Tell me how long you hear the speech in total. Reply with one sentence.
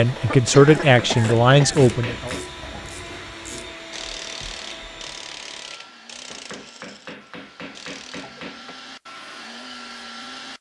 You can hear the speech for 2 seconds altogether.